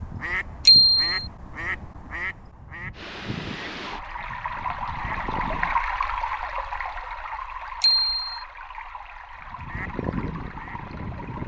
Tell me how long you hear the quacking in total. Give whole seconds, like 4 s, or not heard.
8 s.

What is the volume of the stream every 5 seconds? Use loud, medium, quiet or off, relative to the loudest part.
loud, loud, medium.